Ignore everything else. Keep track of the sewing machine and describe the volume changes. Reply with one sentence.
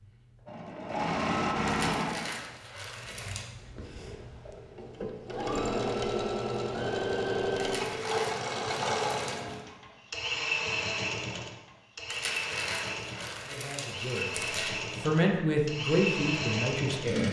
The loudness of the sewing machine stays about the same.